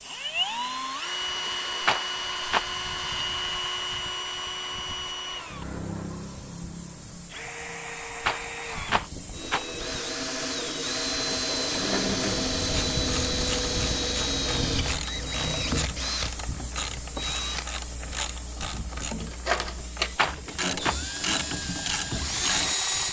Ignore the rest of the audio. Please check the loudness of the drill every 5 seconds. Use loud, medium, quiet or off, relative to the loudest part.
loud, medium, loud, loud, loud.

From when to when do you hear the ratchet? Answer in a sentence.
You can hear the ratchet from 11.7 to 22.8 s.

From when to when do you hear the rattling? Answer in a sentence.
The rattling can be heard from 1.8 to 2.6 s, from 8.2 to 9.7 s and from 20.1 to 20.9 s.